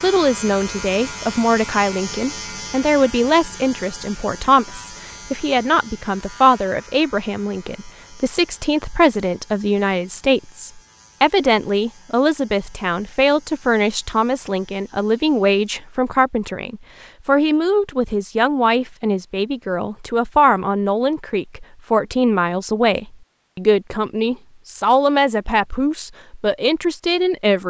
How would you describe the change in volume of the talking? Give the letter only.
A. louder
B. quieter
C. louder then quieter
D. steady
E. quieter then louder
D.